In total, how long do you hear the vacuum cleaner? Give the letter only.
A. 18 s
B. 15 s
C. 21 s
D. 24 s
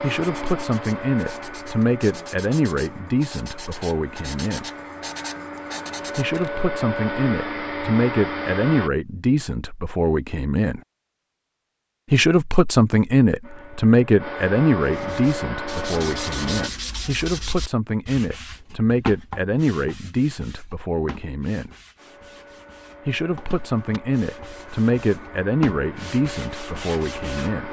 A.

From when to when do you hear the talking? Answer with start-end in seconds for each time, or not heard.
0.0-4.7, 6.2-10.8, 12.1-21.7, 23.1-27.6.